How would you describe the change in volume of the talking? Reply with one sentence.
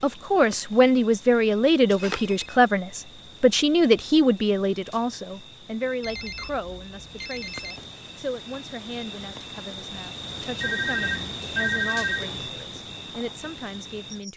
The loudness of the talking goes down.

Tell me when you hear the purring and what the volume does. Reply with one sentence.
You can't hear the purring here.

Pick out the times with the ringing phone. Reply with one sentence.
The ringing phone can be heard from 1.9 to 2.5 s, from 6.0 to 7.8 s and from 10.6 to 12.5 s.